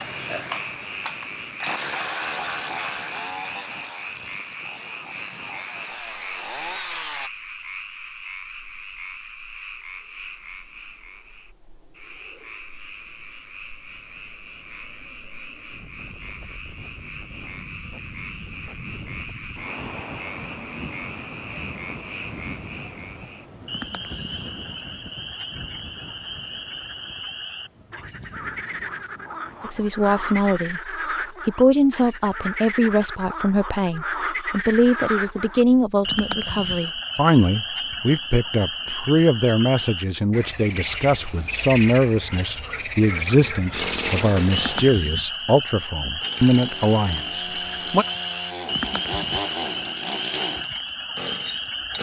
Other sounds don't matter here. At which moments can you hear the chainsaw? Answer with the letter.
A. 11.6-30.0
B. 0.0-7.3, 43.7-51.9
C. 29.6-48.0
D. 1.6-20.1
B.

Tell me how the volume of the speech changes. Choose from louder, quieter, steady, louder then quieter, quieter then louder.
steady.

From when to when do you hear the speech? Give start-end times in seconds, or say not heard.
29.6-48.0.